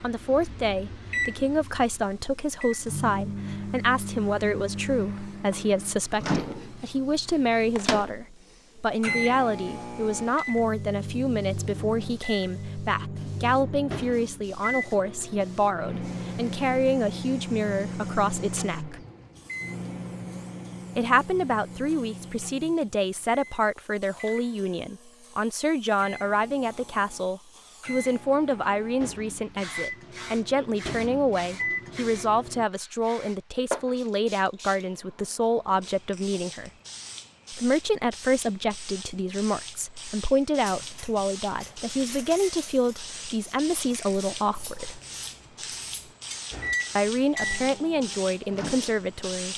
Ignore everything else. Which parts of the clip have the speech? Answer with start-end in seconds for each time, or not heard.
0.0-19.0, 20.9-36.7, 37.5-45.0, 47.0-49.5.